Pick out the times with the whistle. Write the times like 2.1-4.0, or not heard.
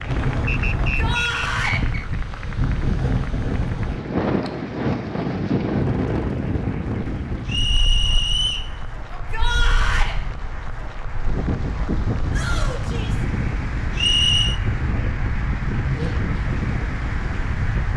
0.5-2.0, 7.5-8.7, 13.9-14.6.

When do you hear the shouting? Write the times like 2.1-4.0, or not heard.
0.8-1.8, 9.1-10.2, 12.3-13.2.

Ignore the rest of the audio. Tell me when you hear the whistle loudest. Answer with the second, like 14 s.
14 s.